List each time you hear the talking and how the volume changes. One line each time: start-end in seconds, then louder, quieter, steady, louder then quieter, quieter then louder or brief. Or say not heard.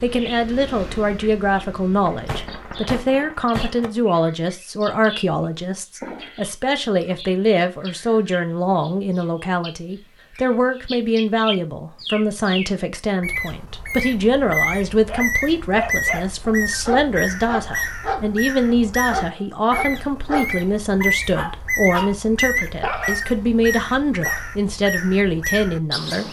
0.0-26.2 steady.